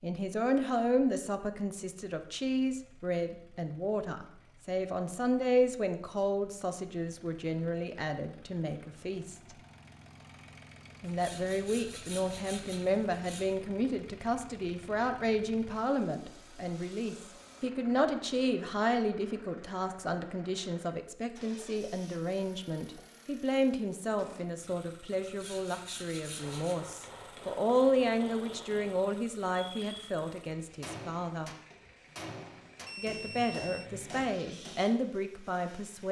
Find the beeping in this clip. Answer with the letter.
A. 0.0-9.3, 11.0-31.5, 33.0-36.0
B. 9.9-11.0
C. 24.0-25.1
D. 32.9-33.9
D.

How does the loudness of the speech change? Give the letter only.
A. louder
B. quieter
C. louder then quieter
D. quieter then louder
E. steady
E.